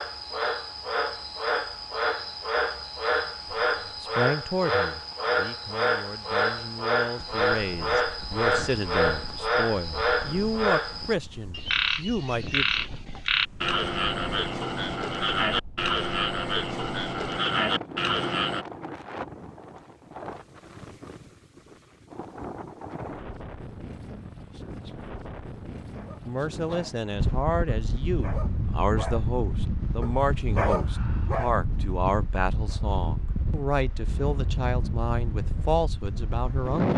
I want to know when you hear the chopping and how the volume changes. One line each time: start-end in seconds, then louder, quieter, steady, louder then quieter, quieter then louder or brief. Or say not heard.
not heard.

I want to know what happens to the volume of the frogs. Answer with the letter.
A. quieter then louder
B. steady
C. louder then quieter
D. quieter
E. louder
B.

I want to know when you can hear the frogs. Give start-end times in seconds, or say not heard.
0.0-18.6.